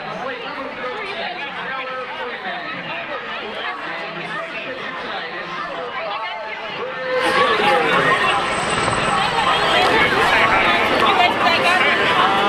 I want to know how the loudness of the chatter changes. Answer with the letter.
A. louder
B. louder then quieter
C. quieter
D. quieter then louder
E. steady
A.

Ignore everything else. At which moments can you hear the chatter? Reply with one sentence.
You can hear the chatter from 0.0 to 12.4 s.